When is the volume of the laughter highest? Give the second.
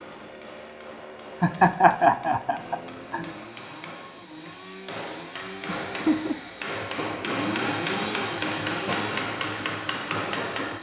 2 s.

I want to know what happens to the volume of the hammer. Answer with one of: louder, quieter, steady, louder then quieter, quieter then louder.
louder.